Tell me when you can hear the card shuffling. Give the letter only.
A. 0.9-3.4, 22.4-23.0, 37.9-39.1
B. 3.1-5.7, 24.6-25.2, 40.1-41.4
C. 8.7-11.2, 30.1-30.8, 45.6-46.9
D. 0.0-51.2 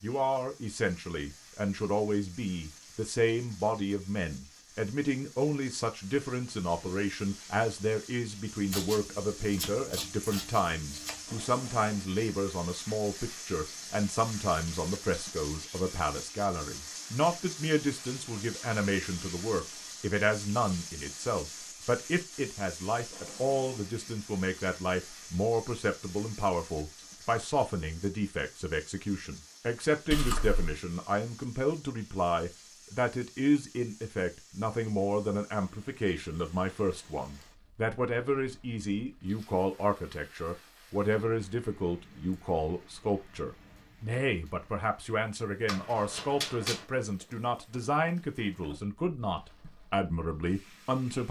C.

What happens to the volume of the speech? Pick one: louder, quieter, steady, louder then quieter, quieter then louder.
steady.